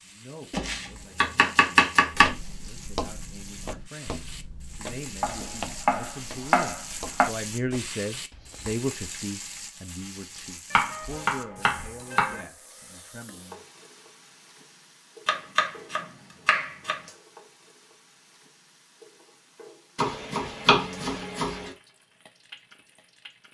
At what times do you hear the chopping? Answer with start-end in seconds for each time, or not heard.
0.5-2.4, 5.2-7.3, 10.7-12.4, 15.2-17.0, 19.9-21.7.